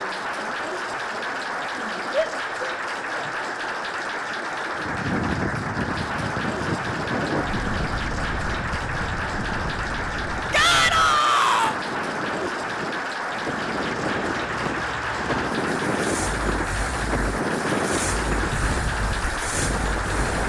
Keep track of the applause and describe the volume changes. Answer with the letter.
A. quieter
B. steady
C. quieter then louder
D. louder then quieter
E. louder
B.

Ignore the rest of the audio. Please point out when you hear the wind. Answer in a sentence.
You can hear the wind from 4.8 to 20.4 s.